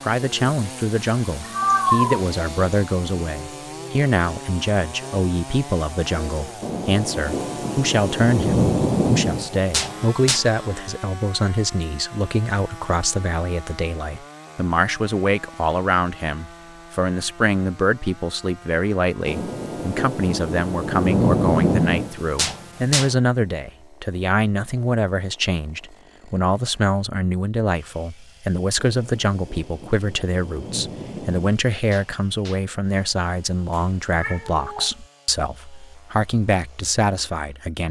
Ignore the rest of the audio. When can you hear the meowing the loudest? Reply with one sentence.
The volume of the meowing peaks at 2 seconds.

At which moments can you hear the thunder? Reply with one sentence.
You can hear the thunder from 6.6 to 10.4 s, from 19.2 to 23.1 s and from 28.8 to 32.6 s.